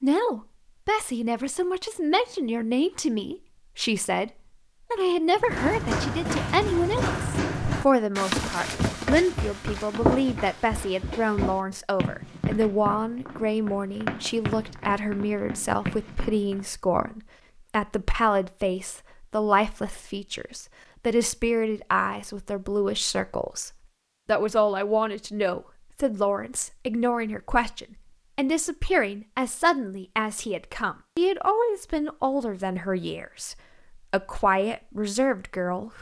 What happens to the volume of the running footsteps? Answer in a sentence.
The loudness of the running footsteps goes down.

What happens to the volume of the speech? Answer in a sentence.
The volume of the speech stays about the same.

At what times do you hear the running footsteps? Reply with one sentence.
You can hear the running footsteps from 5.4 to 16.6 s.